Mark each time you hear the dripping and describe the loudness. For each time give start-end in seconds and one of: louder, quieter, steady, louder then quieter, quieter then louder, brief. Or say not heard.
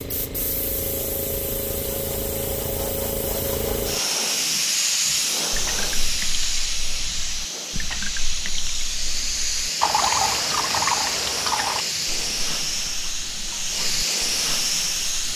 5.5-15.3 louder then quieter.